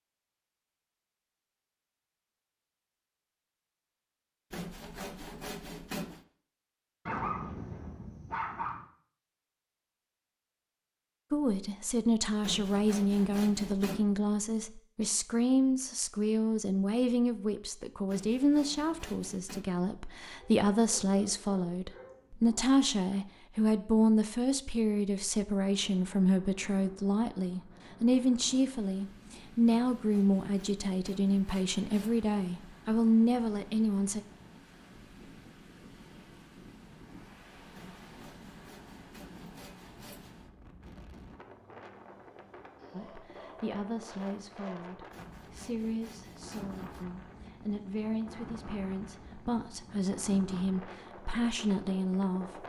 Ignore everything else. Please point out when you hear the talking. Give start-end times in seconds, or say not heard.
11.3-34.2, 42.9-52.6.